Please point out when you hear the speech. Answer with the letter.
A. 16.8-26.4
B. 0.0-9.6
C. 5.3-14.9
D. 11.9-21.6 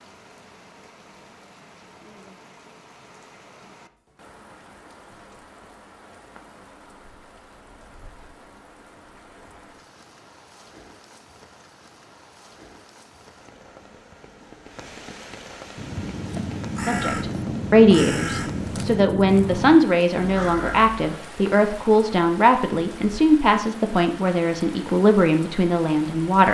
A.